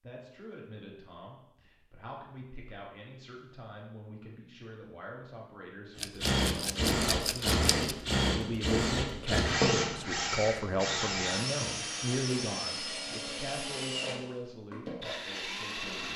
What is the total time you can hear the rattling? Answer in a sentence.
You can hear the rattling for 2 seconds altogether.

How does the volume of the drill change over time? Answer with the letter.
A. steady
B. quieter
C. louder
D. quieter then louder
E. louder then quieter
B.